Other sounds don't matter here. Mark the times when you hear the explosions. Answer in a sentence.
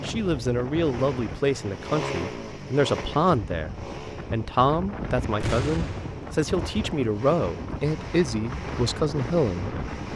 You can hear the explosions from 5.4 to 6.2 s.